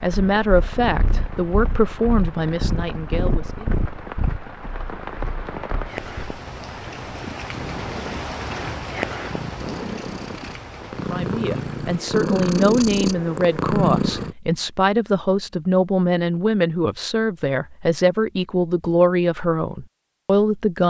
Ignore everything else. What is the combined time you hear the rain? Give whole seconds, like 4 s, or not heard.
12 s.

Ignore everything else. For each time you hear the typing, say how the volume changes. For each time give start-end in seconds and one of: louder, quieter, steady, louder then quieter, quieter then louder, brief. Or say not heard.
not heard.